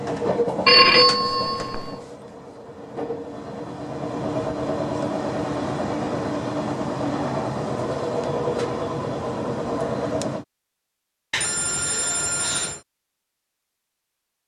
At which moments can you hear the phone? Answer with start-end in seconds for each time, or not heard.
0.7-1.9, 11.3-12.8.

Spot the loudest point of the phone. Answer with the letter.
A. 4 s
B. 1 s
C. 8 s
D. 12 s
B.